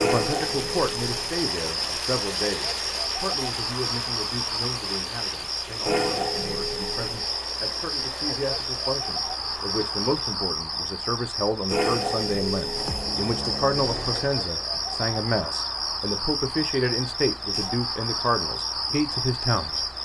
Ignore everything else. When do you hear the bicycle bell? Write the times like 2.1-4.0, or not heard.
not heard.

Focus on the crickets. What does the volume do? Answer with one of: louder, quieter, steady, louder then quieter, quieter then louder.
steady.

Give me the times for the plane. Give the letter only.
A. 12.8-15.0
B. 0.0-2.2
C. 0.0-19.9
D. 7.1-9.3
A.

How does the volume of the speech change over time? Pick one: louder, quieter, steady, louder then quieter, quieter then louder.
quieter then louder.